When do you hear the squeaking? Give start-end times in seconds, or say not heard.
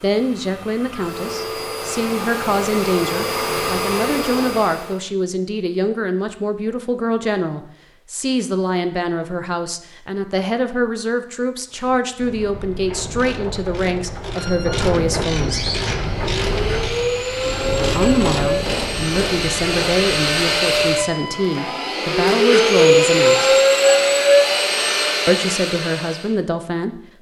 14.3-16.1.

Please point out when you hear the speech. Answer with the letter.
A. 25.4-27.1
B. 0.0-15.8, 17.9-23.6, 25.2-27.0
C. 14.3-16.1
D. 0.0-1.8
B.